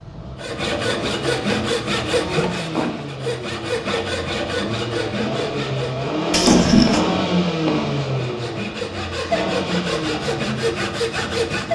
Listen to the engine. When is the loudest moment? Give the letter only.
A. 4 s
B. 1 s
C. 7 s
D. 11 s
C.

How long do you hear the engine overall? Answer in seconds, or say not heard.
12 s.